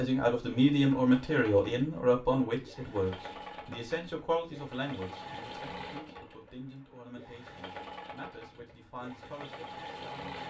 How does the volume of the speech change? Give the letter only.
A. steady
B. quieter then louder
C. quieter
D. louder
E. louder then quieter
C.